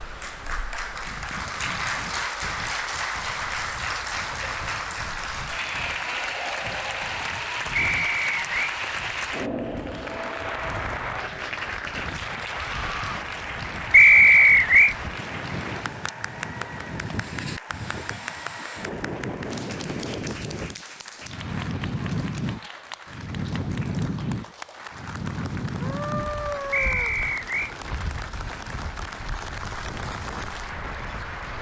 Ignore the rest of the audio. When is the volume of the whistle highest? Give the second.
14 s.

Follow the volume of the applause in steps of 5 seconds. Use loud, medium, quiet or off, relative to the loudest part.
loud, loud, loud, medium, medium, medium, medium.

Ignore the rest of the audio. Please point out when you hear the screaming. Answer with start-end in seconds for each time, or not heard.
12.5-13.2, 25.8-27.2.